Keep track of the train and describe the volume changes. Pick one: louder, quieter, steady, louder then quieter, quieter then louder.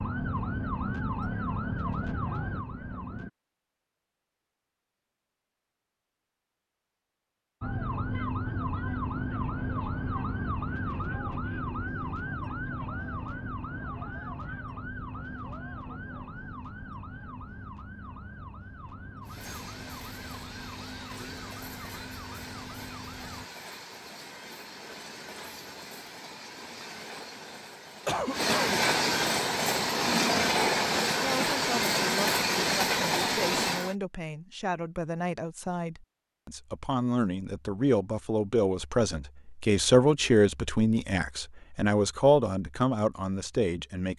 louder.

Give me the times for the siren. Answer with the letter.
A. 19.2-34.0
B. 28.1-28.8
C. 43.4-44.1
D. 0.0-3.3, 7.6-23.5
D.